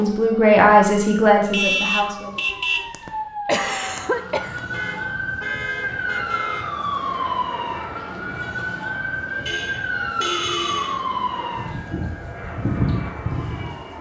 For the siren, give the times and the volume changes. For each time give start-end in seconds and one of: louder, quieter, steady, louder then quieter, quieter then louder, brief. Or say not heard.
0.0-13.9 louder.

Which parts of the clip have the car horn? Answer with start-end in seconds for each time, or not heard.
1.5-2.9, 4.7-6.7, 9.4-11.0.